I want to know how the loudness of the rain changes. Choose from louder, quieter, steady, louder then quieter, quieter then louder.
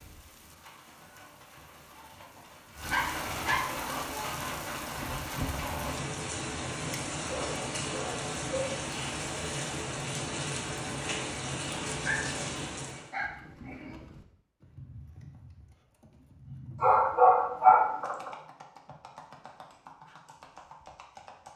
louder.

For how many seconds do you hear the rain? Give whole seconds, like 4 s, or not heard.
13 s.